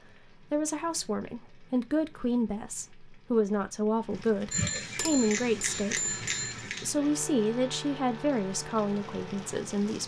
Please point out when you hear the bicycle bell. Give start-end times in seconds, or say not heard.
4.5-7.0.